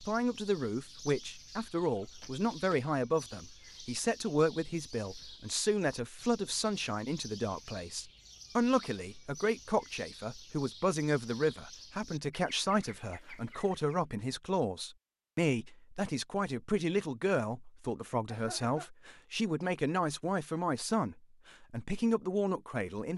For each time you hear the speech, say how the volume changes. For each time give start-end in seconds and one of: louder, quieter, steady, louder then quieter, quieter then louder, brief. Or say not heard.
0.0-23.1 steady.